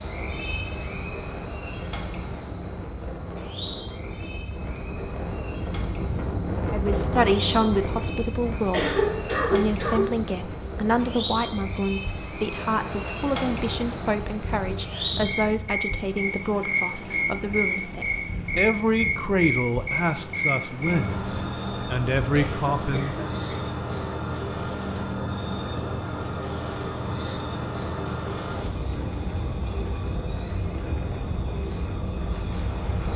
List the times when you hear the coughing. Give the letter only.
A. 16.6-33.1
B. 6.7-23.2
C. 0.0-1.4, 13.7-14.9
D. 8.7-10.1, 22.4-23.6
D.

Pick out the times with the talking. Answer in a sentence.
You can hear the talking from 6.7 to 23.2 s.